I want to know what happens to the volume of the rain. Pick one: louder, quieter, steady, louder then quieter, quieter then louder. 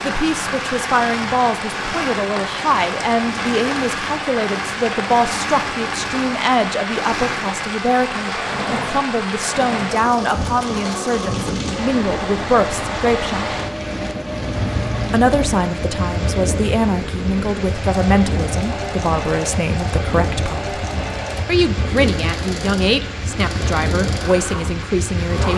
steady.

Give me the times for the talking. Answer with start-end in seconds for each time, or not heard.
0.0-13.5, 15.1-20.8, 21.4-25.5.